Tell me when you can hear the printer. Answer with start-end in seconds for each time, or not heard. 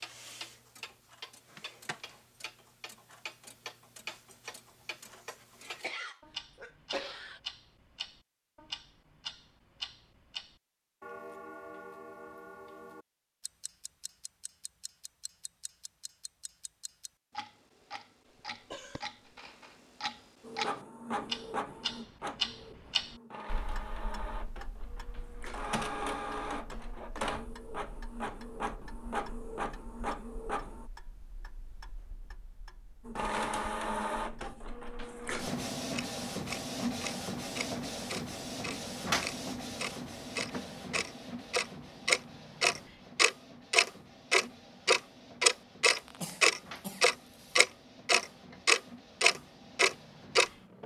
20.4-30.9, 33.0-50.8.